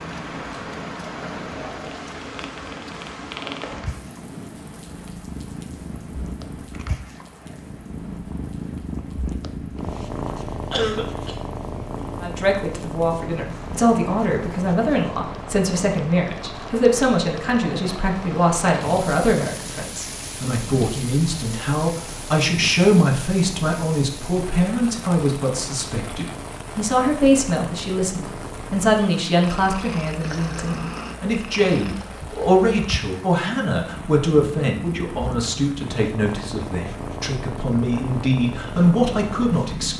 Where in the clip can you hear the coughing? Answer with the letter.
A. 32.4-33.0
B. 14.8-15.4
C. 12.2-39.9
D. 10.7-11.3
D.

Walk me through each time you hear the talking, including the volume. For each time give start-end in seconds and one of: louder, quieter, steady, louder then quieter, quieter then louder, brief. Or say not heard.
12.2-39.9 steady.